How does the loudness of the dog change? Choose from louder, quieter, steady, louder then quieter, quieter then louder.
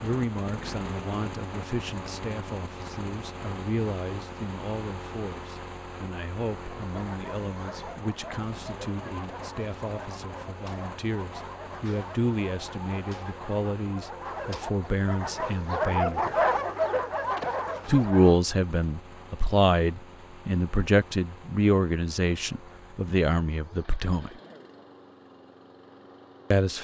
louder.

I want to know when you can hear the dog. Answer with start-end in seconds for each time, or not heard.
6.9-18.4.